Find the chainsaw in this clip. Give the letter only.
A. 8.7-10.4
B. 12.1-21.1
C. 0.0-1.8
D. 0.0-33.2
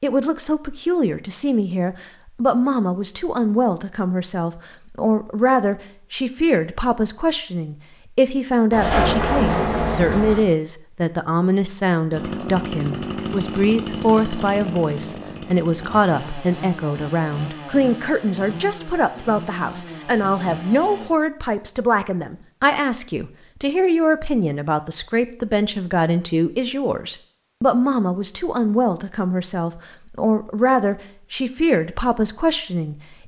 B.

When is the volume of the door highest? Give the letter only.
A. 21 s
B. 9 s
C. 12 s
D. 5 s
B.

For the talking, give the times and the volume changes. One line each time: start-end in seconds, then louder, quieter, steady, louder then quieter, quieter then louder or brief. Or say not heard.
0.0-33.2 steady.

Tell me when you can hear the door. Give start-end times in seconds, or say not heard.
8.7-10.4.